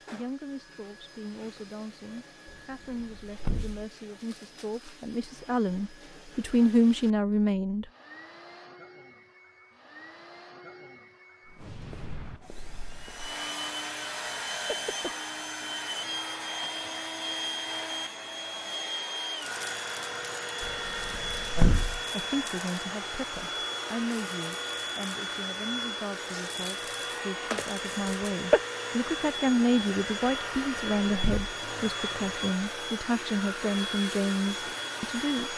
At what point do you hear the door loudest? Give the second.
22 s.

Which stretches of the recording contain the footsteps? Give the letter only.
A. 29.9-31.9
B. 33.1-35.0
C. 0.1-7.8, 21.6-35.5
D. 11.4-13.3
D.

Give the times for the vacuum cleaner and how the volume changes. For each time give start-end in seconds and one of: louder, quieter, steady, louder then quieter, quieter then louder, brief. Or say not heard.
0.0-35.5 louder.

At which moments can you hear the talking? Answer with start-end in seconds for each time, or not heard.
0.1-7.8, 21.6-35.5.